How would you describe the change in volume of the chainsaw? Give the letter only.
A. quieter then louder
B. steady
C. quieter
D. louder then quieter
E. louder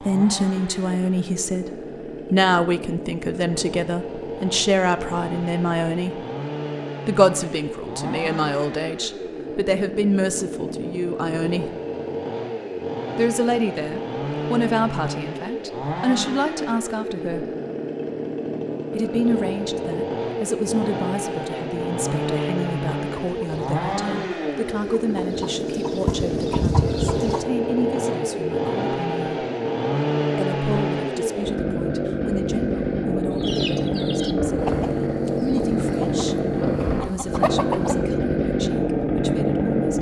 E.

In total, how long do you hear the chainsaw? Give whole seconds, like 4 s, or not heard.
40 s.